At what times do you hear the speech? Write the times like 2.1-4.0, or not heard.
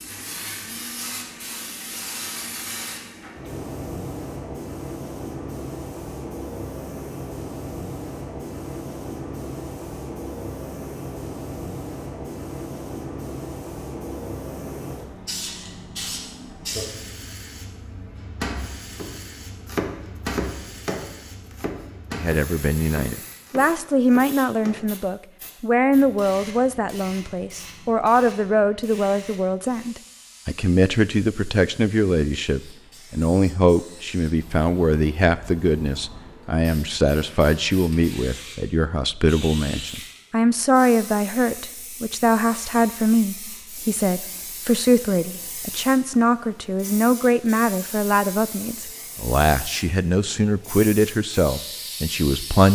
22.1-52.7.